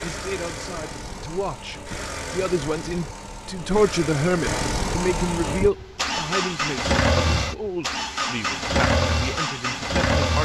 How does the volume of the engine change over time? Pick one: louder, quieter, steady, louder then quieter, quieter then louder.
louder.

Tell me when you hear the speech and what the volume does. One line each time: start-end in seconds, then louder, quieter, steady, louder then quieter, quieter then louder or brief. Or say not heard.
0.0-10.3 louder then quieter.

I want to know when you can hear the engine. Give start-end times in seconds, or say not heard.
0.0-10.3.